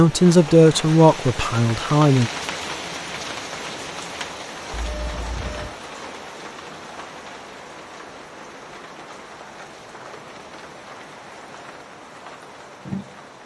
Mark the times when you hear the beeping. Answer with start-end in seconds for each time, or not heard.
4.7-5.8.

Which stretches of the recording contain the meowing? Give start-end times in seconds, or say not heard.
not heard.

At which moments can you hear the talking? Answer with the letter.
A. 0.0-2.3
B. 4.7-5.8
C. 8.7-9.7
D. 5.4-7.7
A.